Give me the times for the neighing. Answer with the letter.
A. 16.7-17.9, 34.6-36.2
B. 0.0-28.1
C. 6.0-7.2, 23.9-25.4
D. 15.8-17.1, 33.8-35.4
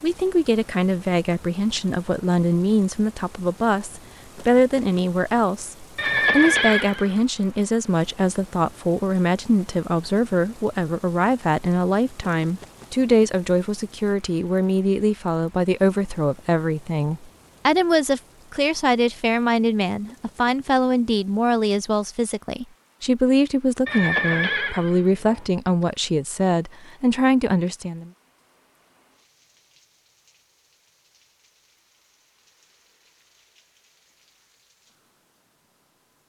C.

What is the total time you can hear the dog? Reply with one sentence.
The dog can't be heard in this clip.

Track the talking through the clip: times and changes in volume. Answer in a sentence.
The talking can be heard from 0.0 to 28.1 s, at a steady volume.